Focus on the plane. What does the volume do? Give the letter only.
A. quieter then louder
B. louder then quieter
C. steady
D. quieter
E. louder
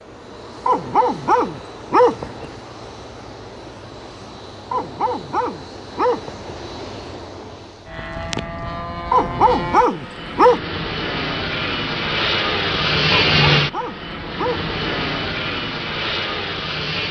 E.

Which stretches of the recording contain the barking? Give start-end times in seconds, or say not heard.
0.7-2.5, 4.7-6.5, 9.1-10.6, 13.2-14.7.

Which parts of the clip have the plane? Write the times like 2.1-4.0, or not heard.
0.0-17.0.